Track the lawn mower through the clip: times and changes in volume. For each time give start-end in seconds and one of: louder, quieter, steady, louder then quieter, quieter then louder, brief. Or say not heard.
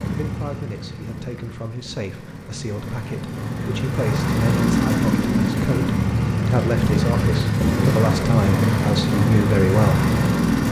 0.0-10.6 louder.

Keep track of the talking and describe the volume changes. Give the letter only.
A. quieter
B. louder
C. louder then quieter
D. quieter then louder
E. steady
B.